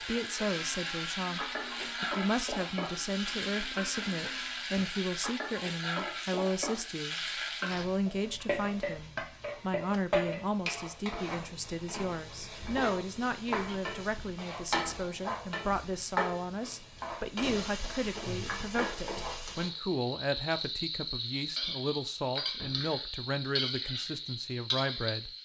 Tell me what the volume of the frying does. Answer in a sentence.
The volume of the frying stays about the same.